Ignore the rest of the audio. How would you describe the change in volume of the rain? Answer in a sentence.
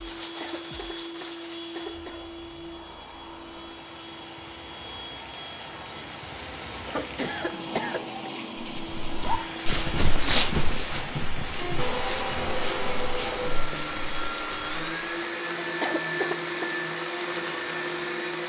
The loudness of the rain goes up.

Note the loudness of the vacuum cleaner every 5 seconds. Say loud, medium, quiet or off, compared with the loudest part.
medium, medium, loud, loud.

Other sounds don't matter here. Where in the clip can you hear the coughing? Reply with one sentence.
The coughing can be heard from 0.4 to 2.2 s, from 6.8 to 8.2 s and from 15.8 to 16.7 s.